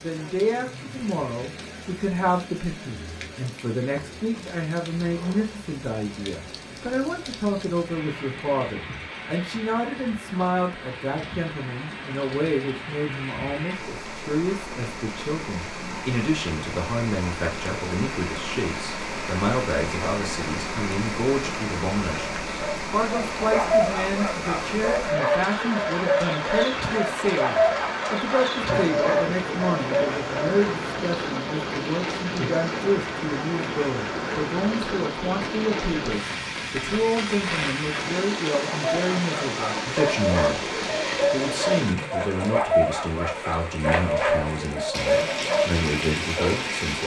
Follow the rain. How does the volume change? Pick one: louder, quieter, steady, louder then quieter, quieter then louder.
louder.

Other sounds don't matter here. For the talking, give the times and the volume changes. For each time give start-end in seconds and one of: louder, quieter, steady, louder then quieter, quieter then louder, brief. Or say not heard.
0.0-47.0 steady.